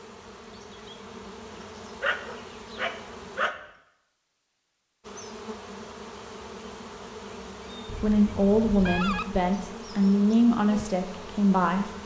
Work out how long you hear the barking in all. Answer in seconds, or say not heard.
2 s.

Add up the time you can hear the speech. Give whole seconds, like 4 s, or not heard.
4 s.